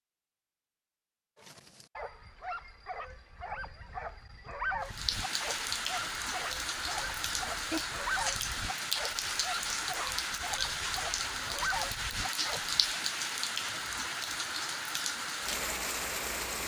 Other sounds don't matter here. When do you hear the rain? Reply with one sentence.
The rain can be heard from 4.8 to 16.6 s.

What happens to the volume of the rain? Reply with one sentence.
The volume of the rain stays about the same.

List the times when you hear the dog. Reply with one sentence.
You can hear the dog from 1.4 to 12.8 s.